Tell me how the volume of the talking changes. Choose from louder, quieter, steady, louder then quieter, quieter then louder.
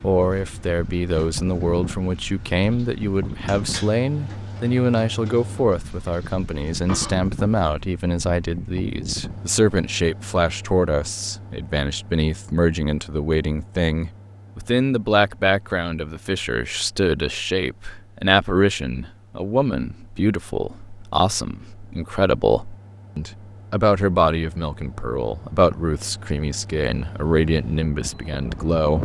steady.